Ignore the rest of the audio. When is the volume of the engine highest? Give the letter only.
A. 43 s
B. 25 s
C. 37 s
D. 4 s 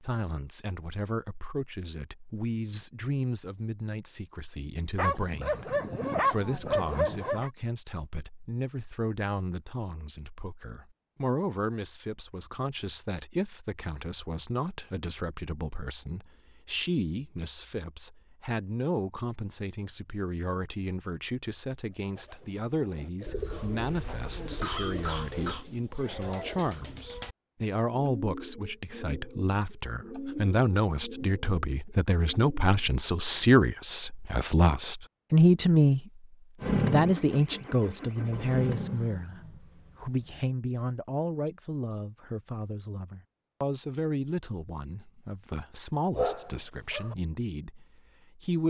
C.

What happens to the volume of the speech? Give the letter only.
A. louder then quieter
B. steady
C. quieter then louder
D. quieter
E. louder
A.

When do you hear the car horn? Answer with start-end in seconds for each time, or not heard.
not heard.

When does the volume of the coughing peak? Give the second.
25 s.